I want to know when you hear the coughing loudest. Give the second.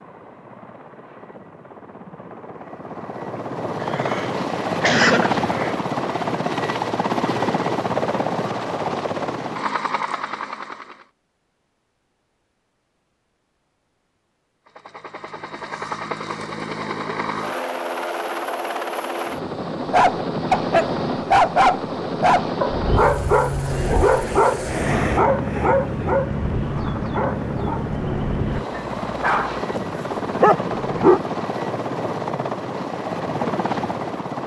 5 s.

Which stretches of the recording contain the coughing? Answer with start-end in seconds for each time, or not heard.
3.4-5.8.